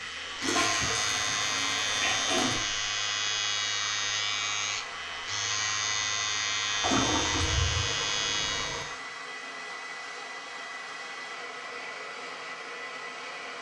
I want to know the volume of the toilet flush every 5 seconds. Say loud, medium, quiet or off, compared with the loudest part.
loud, loud, off.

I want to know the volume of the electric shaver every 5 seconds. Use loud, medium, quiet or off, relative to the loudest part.
loud, loud, off.